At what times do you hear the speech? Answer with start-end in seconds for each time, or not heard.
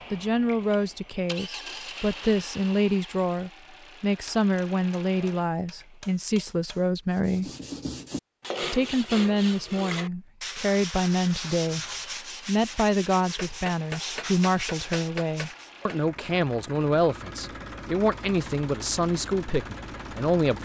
0.1-7.5, 8.7-11.8, 12.4-20.6.